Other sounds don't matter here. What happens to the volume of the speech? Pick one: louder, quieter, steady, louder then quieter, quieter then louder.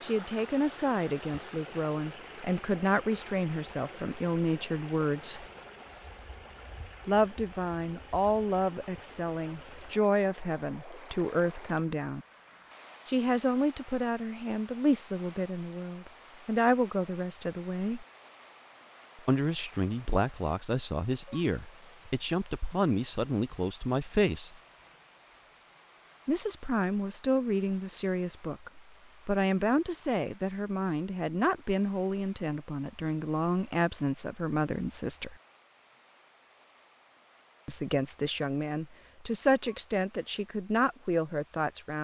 steady.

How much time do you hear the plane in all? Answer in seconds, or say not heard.
not heard.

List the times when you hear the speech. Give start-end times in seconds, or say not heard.
0.0-5.5, 7.0-12.2, 13.1-18.1, 19.2-24.6, 26.2-35.4, 37.6-41.9.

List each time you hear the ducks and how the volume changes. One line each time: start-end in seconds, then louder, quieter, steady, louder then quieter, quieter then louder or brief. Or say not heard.
not heard.